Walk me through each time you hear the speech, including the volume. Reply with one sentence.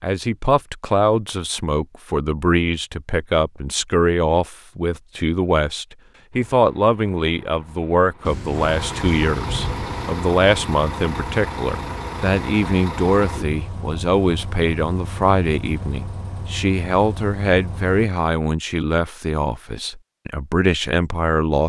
You can hear the speech from 0.0 to 21.6 s, at a steady volume.